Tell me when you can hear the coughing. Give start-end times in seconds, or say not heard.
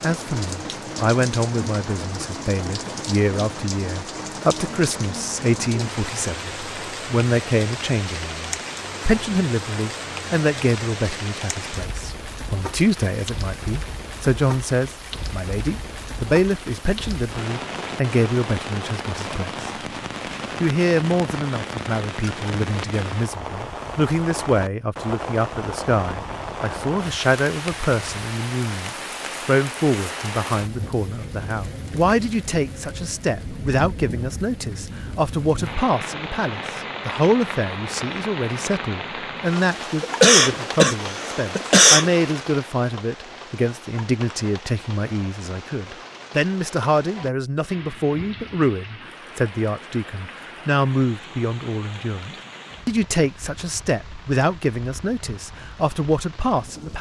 40.0-42.1.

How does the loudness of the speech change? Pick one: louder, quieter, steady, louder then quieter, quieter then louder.
steady.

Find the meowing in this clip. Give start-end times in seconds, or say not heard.
not heard.